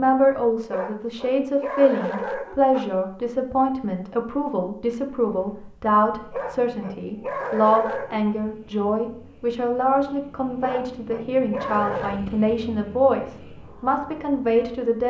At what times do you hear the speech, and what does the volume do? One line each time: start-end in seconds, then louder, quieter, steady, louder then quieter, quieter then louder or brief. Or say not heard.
0.0-15.0 steady.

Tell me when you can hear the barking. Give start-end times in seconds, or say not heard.
0.7-2.9, 6.3-8.2, 10.6-12.2.